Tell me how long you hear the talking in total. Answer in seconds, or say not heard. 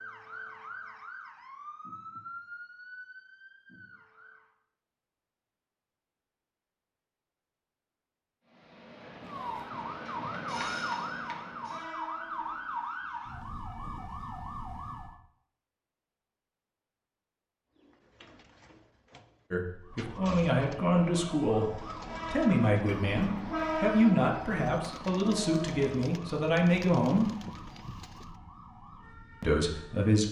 8 s.